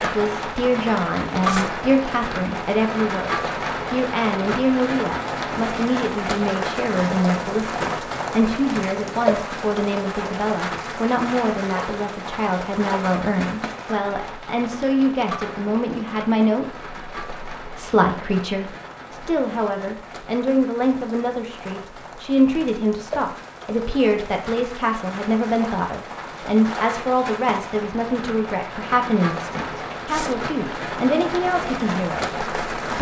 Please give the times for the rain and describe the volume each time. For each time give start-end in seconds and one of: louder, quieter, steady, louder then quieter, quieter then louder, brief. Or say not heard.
0.0-32.9 quieter then louder.